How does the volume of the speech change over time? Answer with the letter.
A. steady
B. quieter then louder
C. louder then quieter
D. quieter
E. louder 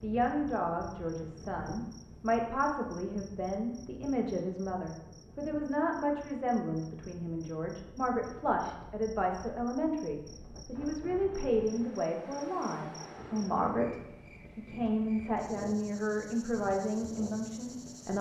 A.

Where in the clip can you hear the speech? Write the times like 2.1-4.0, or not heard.
0.0-18.1.